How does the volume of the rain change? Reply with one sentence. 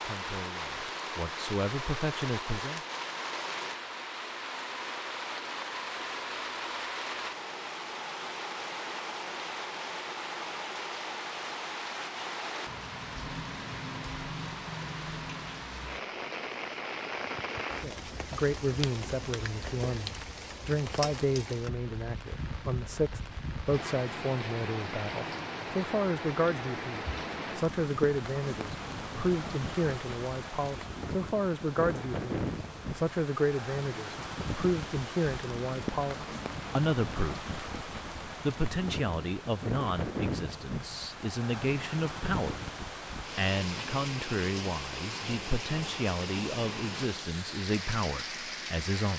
The loudness of the rain stays about the same.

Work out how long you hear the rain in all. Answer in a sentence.
You can hear the rain for 49 seconds altogether.